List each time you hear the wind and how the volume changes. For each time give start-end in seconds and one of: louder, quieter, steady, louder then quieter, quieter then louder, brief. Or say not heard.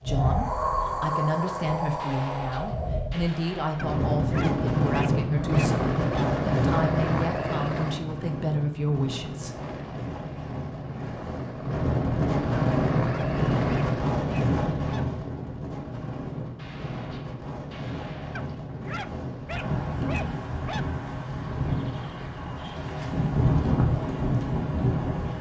0.0-25.3 quieter then louder.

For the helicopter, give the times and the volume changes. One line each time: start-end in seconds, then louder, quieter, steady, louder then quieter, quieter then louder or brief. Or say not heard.
5.4-8.1 brief
9.3-14.2 louder.